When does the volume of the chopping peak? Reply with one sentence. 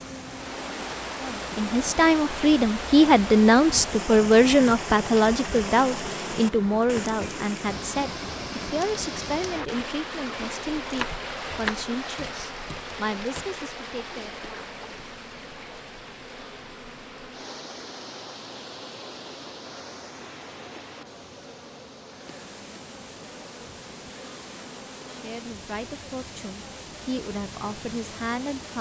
The volume of the chopping peaks at 12 seconds.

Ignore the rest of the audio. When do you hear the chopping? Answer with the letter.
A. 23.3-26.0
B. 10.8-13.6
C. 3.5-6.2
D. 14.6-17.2
B.